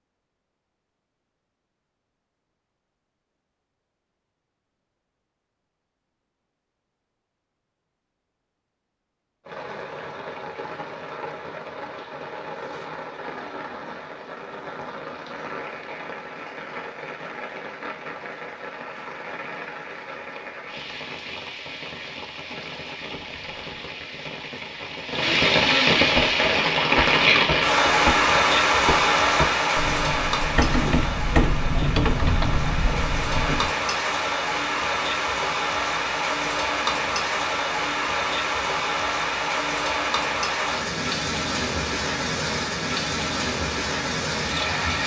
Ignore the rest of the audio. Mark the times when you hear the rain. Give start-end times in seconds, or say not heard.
9.4-45.0.